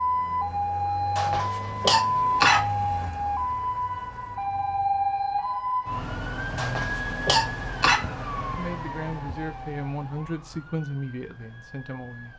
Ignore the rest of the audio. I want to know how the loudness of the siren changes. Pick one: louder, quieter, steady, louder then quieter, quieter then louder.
quieter.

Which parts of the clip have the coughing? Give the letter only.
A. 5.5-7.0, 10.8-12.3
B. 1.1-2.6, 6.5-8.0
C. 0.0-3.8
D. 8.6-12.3
B.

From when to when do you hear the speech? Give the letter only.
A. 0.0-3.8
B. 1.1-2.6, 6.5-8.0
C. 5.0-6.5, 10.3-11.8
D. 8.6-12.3
D.